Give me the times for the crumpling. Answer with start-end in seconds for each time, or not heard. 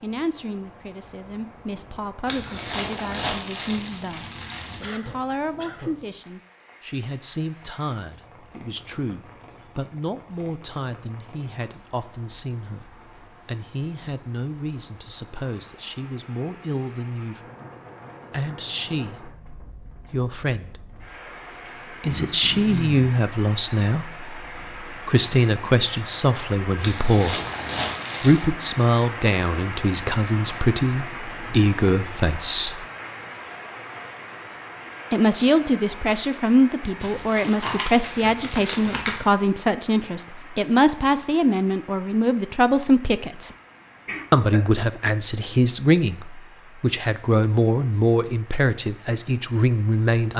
2.2-4.9, 26.8-28.4, 37.0-39.1.